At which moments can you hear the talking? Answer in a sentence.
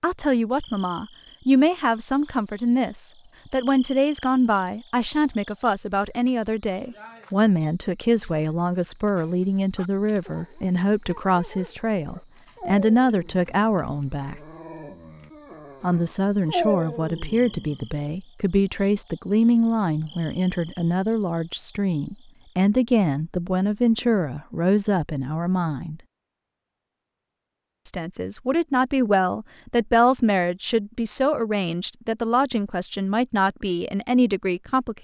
You can hear the talking from 0.0 to 14.4 s, from 15.8 to 26.0 s and from 27.9 to 34.9 s.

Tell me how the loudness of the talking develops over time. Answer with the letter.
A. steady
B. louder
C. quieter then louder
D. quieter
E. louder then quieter
A.